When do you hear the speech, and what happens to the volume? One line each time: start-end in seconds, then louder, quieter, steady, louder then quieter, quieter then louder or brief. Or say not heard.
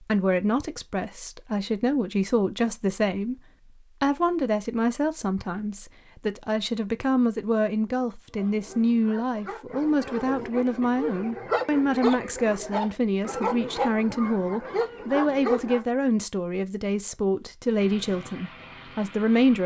0.0-19.6 steady.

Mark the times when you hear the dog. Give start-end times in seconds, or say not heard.
8.3-15.8.